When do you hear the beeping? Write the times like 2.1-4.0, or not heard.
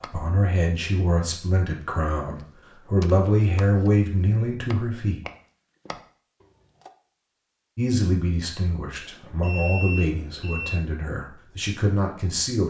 9.0-10.8.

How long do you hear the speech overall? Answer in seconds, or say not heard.
10 s.